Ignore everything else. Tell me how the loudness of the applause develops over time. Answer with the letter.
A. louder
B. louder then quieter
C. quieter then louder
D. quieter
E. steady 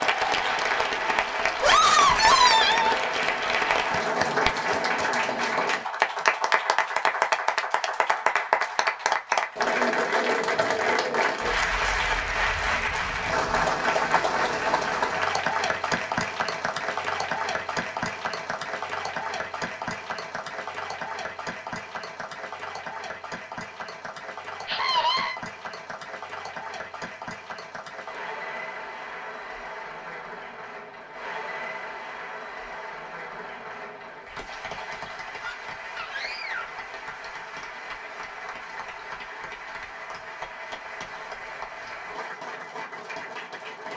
D.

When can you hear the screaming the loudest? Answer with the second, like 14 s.
2 s.